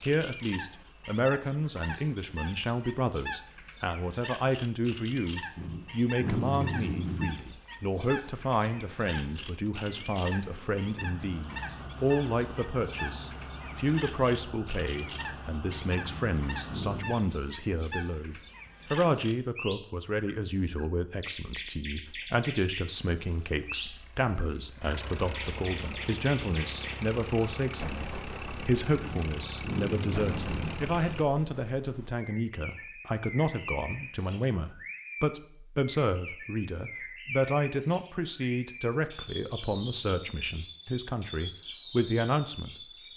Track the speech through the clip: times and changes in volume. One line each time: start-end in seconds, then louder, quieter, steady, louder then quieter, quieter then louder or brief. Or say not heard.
0.0-42.8 steady.